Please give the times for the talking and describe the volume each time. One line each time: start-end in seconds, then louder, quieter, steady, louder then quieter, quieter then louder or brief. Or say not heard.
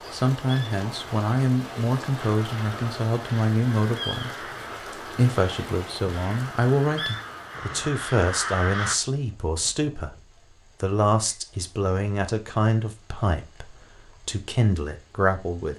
0.1-15.7 steady.